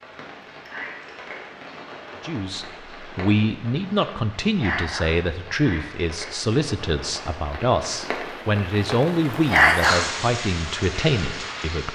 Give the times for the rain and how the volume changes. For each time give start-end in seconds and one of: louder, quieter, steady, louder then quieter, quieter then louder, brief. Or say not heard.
0.0-11.9 louder.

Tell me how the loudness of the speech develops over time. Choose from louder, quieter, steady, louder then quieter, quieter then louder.
steady.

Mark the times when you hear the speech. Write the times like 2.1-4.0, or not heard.
2.2-11.9.